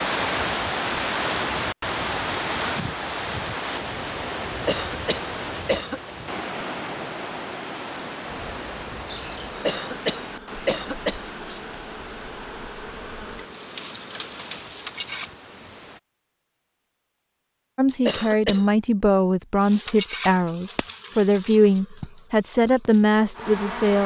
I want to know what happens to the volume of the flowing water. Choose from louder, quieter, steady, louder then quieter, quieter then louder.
quieter.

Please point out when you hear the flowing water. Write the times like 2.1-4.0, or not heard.
0.0-16.0.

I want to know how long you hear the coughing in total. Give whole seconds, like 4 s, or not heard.
4 s.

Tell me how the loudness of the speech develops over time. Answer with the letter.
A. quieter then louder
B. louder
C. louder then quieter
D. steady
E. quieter
D.